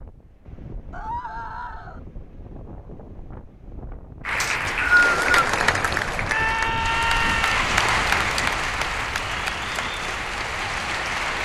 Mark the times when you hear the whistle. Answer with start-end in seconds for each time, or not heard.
4.4-5.5.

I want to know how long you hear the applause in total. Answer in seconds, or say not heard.
7 s.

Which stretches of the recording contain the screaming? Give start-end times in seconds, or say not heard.
0.9-2.0, 6.2-7.7.